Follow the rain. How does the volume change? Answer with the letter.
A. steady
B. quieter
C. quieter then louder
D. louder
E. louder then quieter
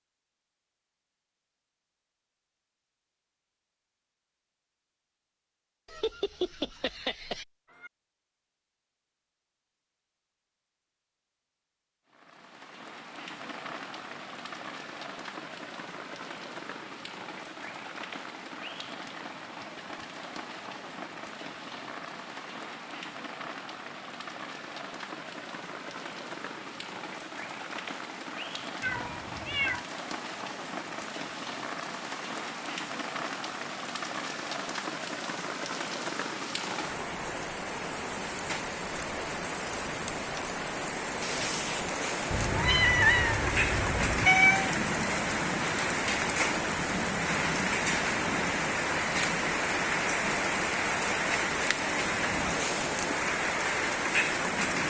D.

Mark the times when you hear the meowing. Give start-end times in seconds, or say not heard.
5.9-7.9, 28.8-29.9, 42.3-44.7.